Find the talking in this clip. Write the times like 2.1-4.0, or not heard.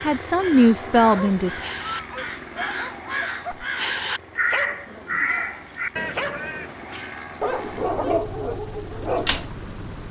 0.0-1.6.